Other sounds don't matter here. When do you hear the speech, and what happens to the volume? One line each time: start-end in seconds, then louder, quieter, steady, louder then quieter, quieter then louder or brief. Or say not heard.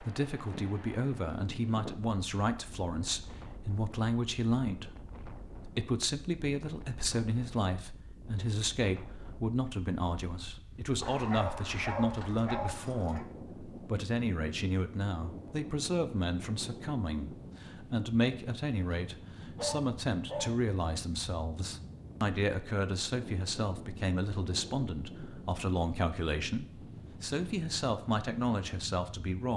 0.0-29.5 steady.